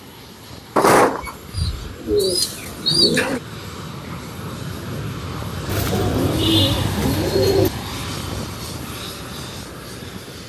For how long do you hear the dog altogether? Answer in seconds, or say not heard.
not heard.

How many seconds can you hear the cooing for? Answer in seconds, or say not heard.
5 s.